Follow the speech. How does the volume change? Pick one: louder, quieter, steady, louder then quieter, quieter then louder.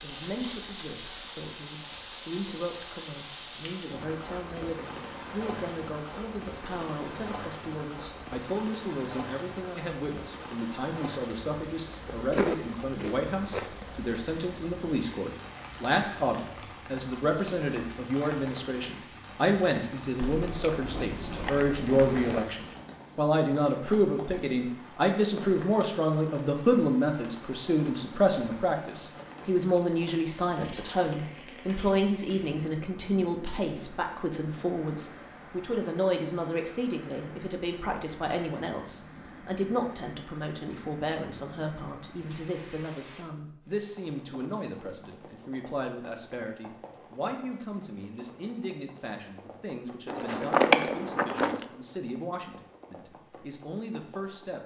louder then quieter.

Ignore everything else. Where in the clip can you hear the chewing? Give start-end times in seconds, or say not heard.
11.9-13.9, 20.2-22.4, 50.1-51.6.